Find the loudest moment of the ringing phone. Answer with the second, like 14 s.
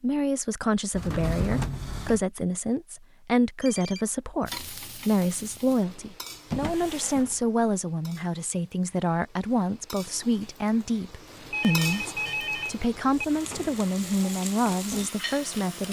12 s.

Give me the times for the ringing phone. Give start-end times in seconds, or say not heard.
3.6-4.0, 11.5-13.2.